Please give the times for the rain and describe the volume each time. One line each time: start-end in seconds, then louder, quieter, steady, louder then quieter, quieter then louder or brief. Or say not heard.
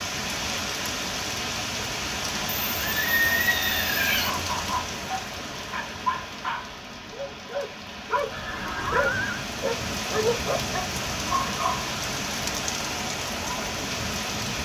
0.0-14.5 quieter then louder.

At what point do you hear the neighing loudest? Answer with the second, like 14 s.
3 s.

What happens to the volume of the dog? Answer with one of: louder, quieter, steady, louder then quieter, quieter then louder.
louder.